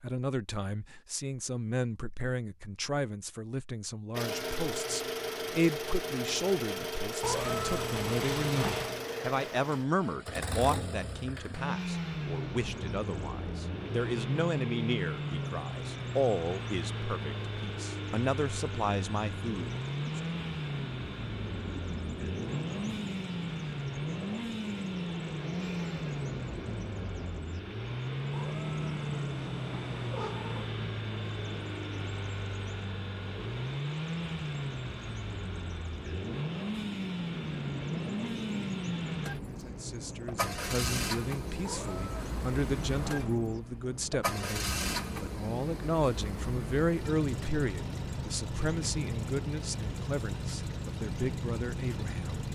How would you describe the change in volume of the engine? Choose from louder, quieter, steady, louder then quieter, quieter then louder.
steady.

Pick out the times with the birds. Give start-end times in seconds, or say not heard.
12.4-52.5.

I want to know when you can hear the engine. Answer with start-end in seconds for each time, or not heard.
4.1-52.5.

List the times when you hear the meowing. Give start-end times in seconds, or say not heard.
7.2-9.0, 28.3-30.8, 41.6-43.4.